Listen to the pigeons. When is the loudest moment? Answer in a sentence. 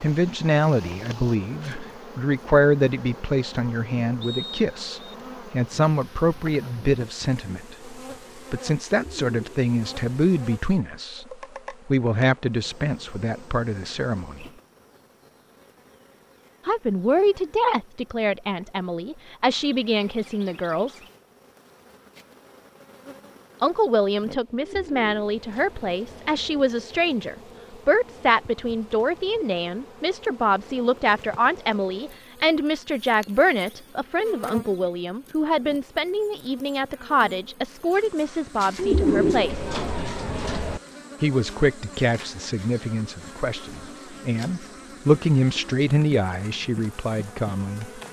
The loudest moment of the pigeons is at 39 seconds.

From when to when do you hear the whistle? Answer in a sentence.
The whistle can be heard from 4.2 to 5.2 s.